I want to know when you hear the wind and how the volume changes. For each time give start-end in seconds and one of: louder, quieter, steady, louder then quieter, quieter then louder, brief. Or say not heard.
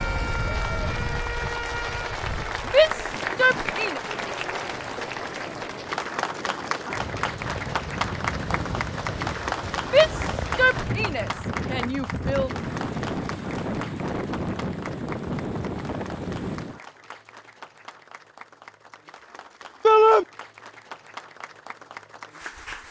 0.0-16.8 louder.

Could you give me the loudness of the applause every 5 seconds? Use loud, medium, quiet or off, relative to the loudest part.
loud, loud, medium, quiet, medium.